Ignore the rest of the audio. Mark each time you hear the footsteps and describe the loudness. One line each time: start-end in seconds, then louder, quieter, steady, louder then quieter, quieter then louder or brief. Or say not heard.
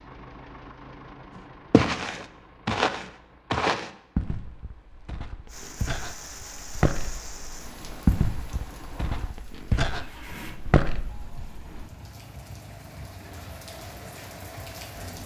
1.7-11.8 quieter then louder.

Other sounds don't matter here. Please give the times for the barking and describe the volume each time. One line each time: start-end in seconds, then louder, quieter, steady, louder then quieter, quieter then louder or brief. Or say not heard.
not heard.